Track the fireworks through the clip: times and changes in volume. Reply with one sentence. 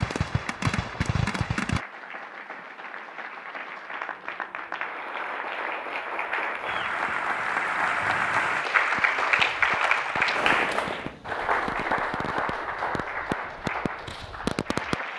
You can hear the fireworks briefly from 0.0 to 1.8 s; and from 8.8 to 14.9 s, getting louder.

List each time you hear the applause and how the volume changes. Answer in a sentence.
The applause can be heard from 0.0 to 15.1 s, getting louder then quieter.